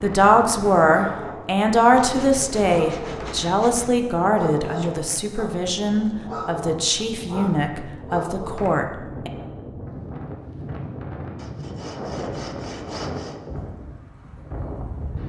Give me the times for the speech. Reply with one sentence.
The speech can be heard from 0.0 to 9.3 s.